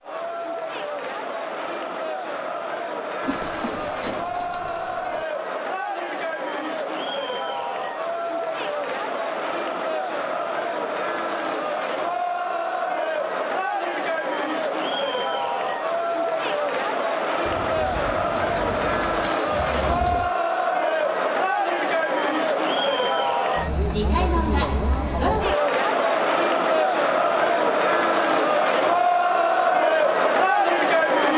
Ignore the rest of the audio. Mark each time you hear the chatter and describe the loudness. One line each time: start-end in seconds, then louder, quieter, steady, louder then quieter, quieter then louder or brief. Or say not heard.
0.0-31.3 louder.